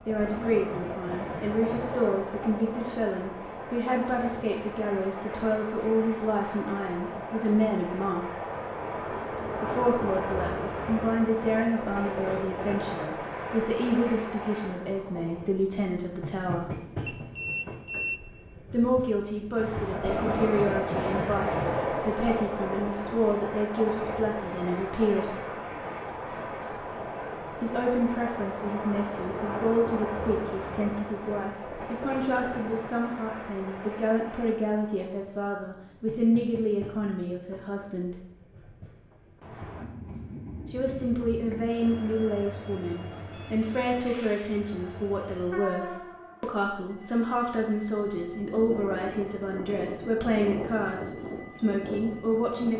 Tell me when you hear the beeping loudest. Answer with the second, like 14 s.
18 s.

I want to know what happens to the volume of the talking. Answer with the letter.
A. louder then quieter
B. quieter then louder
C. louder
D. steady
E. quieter
D.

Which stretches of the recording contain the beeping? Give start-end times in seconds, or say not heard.
17.1-18.2, 43.3-44.4.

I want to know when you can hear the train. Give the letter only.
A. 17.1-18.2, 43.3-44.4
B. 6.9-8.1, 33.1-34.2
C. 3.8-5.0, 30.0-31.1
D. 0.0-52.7
D.